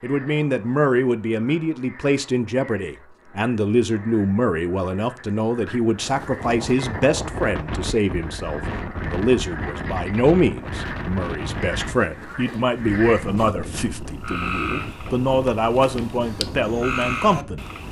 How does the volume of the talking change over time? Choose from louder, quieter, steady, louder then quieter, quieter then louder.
steady.